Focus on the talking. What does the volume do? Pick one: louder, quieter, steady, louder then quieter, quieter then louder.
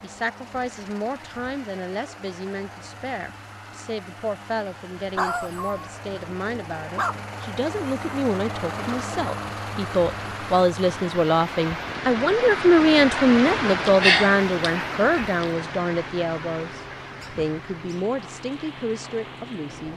louder then quieter.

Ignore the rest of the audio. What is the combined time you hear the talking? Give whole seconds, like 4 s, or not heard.
20 s.